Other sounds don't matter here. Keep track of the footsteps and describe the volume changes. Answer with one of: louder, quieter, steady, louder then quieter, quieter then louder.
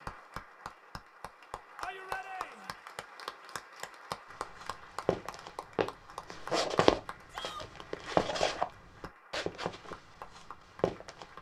louder then quieter.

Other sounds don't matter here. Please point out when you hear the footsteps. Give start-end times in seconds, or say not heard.
4.5-11.2.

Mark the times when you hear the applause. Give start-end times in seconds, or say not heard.
0.0-11.3.